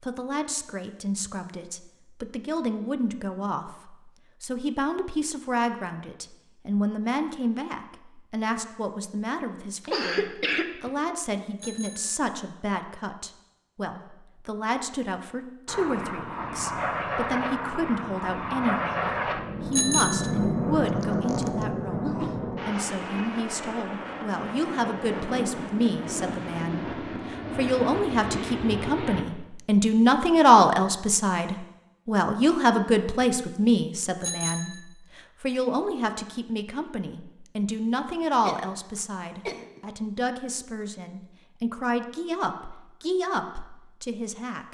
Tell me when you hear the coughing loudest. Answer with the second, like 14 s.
10 s.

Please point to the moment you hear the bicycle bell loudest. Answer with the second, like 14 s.
20 s.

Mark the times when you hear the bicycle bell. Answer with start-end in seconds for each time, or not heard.
11.6-12.2, 19.7-20.3, 34.2-34.8.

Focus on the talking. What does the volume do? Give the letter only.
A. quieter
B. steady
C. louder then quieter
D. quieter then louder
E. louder
C.